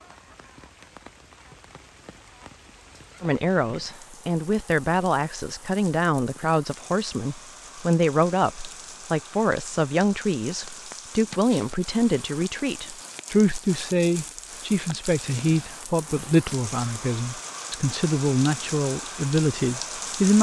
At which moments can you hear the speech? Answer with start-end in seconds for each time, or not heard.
3.2-20.3.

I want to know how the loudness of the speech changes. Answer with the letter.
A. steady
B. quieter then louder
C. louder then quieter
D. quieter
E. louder
A.